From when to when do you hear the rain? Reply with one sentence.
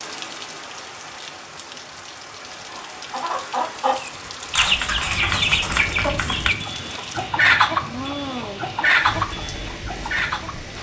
You can hear the rain from 0.0 to 10.7 s.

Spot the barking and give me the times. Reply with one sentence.
The barking can't be heard in this clip.